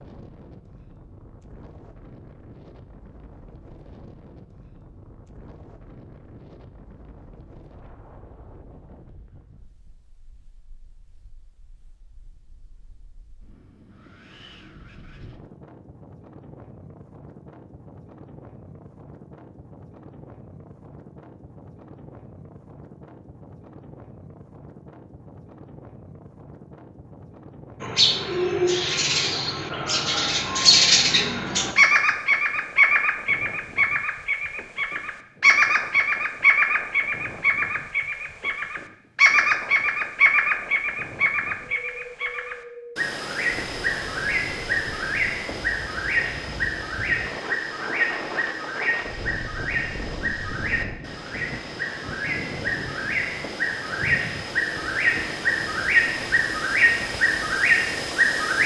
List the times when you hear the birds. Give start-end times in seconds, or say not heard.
27.8-58.6.